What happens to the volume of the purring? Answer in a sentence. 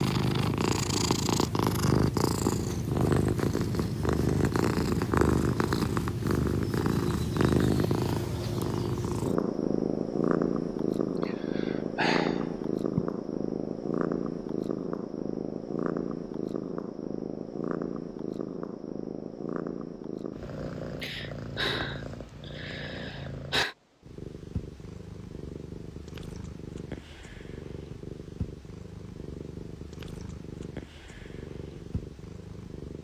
The loudness of the purring goes down.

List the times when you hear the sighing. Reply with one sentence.
The sighing can be heard from 11.2 to 13.1 s and from 21.0 to 23.8 s.